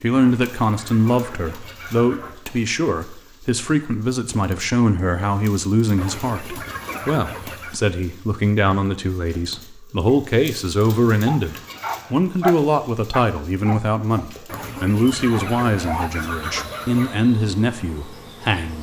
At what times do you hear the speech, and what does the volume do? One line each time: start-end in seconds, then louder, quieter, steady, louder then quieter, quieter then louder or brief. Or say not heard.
0.0-18.7 steady.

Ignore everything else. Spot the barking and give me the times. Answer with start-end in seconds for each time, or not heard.
11.2-16.1.